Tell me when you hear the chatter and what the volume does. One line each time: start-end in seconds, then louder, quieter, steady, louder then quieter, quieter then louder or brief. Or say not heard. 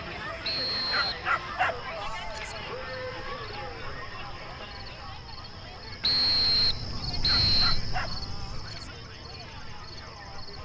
0.0-10.6 quieter.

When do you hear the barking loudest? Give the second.
1 s.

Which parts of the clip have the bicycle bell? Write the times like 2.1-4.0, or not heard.
not heard.